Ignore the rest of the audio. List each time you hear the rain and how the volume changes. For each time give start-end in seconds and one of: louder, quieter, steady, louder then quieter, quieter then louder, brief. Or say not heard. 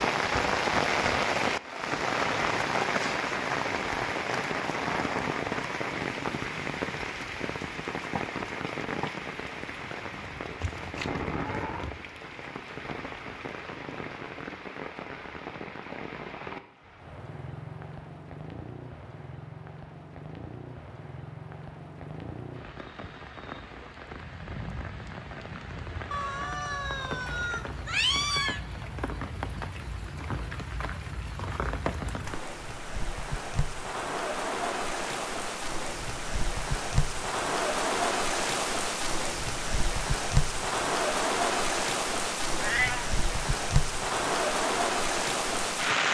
0.0-46.0 quieter then louder.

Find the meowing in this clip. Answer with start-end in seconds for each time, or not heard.
10.6-11.9, 26.1-28.6, 42.6-43.0.